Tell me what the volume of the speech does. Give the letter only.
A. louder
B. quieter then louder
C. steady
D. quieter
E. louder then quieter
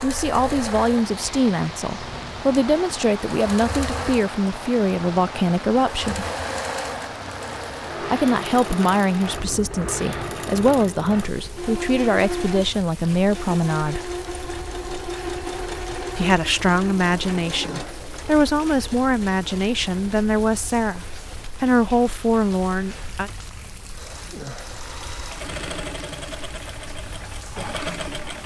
C.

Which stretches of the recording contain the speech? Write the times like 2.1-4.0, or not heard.
0.0-6.2, 8.0-14.1, 16.1-23.3.